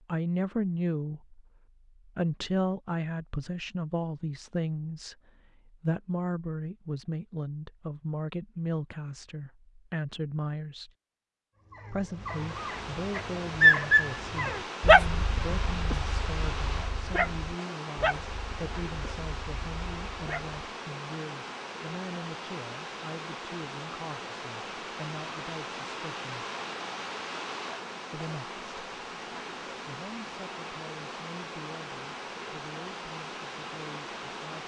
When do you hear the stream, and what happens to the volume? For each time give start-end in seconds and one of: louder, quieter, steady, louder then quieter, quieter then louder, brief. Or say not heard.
12.1-34.6 steady.